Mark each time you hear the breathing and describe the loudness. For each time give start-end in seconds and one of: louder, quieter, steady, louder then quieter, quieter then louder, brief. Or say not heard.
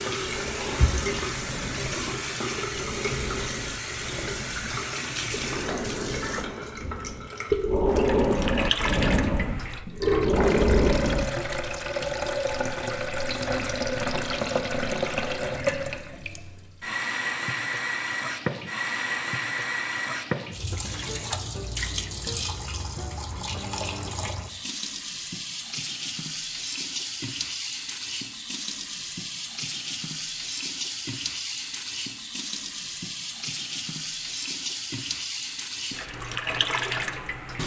0.1-11.4 louder.